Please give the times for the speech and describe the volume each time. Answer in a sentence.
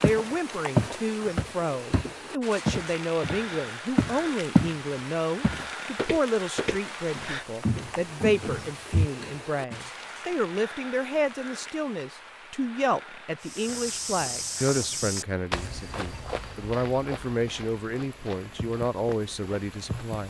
The speech can be heard from 0.0 to 20.2 s, at a steady volume.